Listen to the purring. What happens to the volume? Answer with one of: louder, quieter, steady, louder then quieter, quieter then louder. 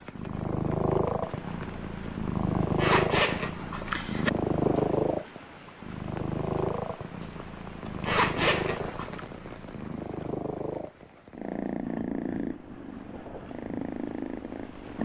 quieter.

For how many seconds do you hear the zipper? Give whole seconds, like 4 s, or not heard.
3 s.